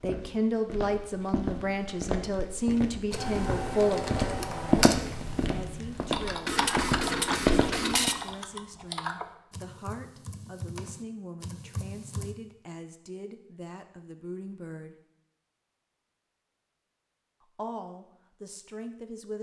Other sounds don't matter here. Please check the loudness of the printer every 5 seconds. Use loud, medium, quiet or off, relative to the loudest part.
medium, loud, off, off.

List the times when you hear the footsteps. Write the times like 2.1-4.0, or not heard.
0.0-8.1.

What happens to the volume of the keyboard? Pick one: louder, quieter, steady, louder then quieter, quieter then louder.
quieter.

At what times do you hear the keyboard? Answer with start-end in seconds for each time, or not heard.
3.1-12.3.